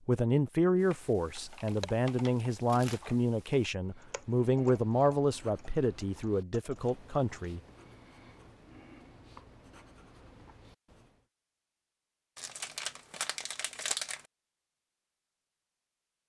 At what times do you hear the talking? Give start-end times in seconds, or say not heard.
0.1-7.6.